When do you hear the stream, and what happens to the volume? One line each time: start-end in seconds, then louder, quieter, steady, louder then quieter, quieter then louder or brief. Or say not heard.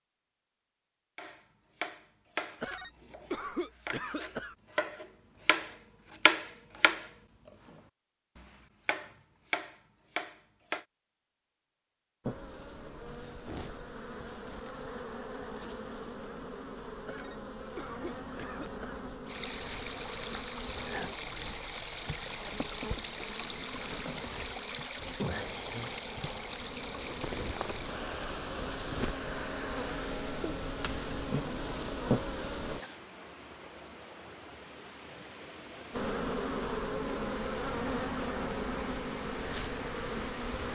19.2-40.7 quieter.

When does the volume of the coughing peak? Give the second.
3 s.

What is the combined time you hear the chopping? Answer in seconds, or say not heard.
10 s.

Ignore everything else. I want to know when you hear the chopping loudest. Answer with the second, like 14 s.
6 s.